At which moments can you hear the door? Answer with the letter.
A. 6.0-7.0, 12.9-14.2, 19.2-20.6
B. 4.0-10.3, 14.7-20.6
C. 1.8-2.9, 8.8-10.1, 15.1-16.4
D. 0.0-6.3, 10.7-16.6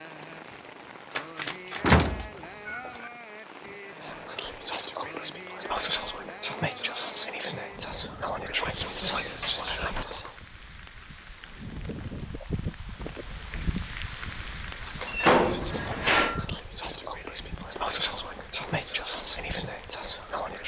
C.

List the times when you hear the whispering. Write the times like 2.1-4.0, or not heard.
4.0-10.3, 14.7-20.6.